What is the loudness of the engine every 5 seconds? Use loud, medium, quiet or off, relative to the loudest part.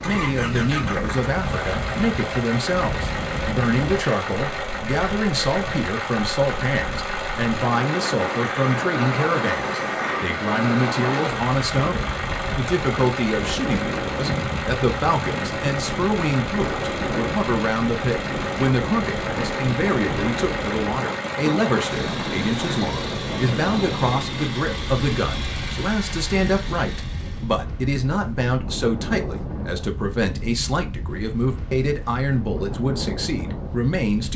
loud, loud, loud, loud, loud, medium, off.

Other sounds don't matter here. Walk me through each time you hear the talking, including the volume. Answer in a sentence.
The talking can be heard from 0.1 to 34.3 s, at a steady volume.